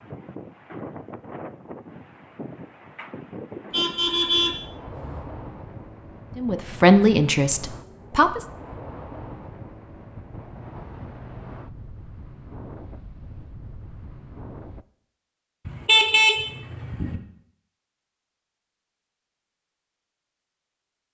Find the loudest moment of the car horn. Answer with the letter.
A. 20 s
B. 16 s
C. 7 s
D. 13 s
B.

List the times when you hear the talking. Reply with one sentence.
The talking can be heard from 6.3 to 8.4 s.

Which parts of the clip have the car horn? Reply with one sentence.
The car horn can be heard from 3.7 to 5.2 s and from 15.7 to 17.2 s.